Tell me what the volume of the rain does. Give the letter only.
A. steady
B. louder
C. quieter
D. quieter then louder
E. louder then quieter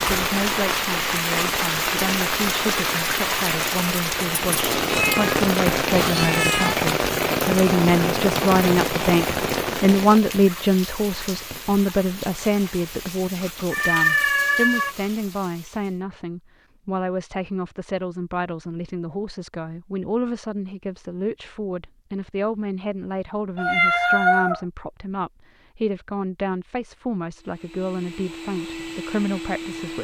C.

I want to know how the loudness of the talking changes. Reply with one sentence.
The volume of the talking goes up, then down.